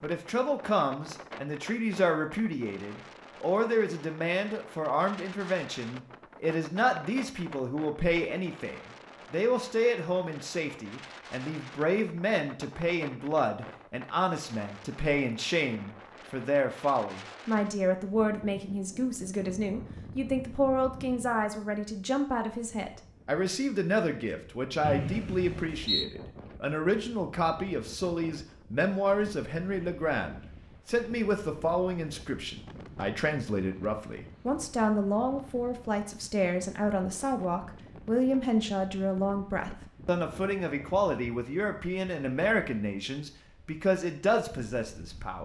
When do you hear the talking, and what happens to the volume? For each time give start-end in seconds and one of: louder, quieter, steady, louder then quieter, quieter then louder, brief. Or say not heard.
0.0-45.3 steady.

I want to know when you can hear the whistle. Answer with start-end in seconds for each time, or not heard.
24.8-26.1.